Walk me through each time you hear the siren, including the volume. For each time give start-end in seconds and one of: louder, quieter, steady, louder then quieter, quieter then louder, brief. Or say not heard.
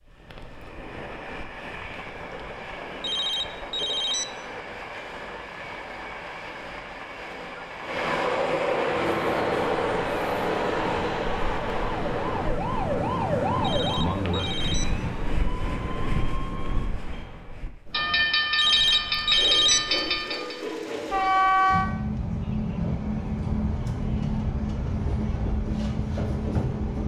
8.8-16.9 louder then quieter.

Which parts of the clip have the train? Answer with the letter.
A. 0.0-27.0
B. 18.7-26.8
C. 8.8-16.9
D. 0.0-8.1
A.